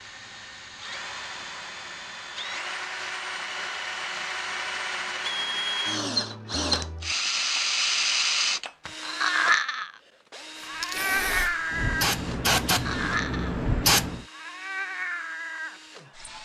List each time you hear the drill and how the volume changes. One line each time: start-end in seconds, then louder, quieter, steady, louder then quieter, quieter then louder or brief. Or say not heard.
0.0-16.4 louder then quieter.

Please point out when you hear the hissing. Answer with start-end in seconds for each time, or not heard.
10.6-14.2.